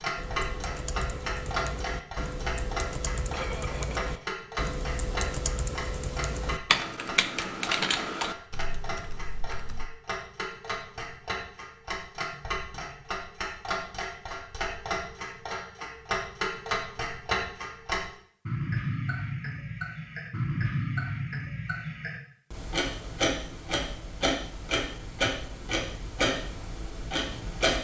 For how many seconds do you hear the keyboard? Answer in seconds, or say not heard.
10 s.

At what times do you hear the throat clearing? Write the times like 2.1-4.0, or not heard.
3.3-4.3.